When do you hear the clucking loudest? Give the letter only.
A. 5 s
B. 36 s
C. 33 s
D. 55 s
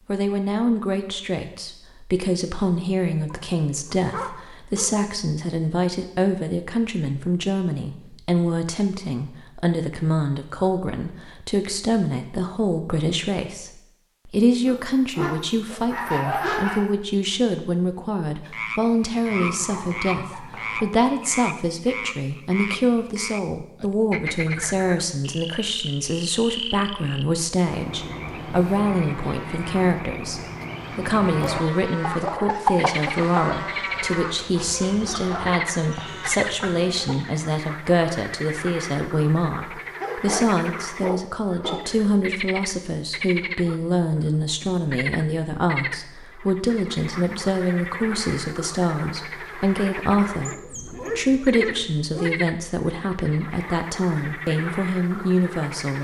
C.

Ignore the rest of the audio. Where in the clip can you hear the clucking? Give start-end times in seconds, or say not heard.
32.0-37.4.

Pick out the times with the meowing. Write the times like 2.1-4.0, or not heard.
not heard.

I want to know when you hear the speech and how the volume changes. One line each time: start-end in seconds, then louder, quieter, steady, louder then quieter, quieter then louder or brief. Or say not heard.
0.1-55.9 steady.